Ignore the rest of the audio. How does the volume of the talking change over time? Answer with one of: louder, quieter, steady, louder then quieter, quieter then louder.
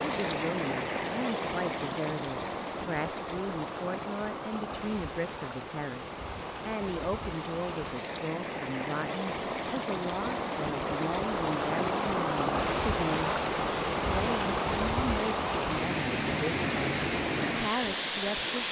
steady.